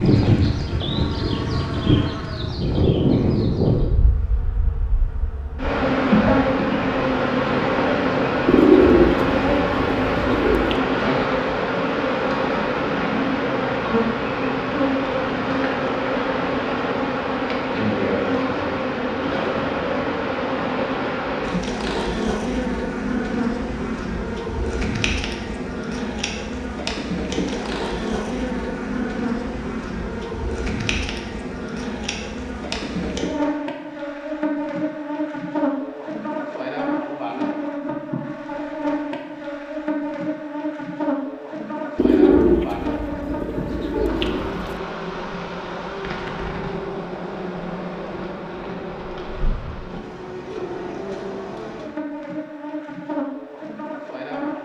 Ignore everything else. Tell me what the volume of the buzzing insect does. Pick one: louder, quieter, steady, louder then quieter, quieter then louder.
quieter.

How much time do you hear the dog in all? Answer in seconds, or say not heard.
not heard.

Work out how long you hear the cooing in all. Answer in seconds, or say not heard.
5 s.